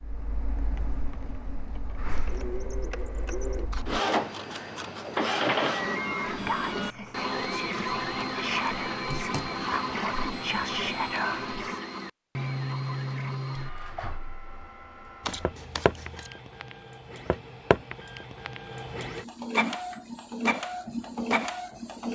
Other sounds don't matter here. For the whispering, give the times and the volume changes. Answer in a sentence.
The whispering can be heard from 6.2 to 11.8 s, getting louder.